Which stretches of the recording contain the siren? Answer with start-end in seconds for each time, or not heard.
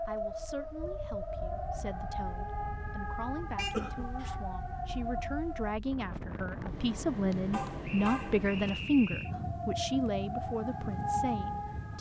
0.0-5.8, 9.2-11.9.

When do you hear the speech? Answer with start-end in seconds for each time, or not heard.
0.1-11.9.